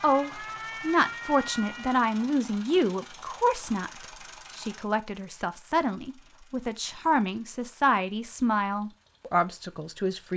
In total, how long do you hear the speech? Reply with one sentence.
You can hear the speech for 10 seconds altogether.